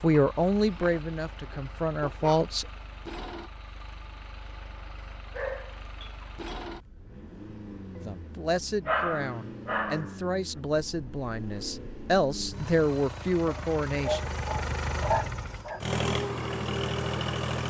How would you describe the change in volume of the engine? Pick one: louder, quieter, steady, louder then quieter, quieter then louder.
louder.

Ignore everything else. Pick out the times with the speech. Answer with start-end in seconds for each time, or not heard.
0.0-2.6, 8.0-14.2.